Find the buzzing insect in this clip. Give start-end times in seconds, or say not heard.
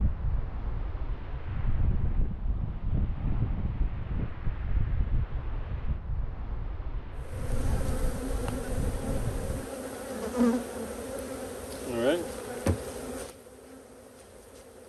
7.2-14.8.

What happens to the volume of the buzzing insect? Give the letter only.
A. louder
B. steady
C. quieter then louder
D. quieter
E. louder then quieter
E.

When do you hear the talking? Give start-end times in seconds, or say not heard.
not heard.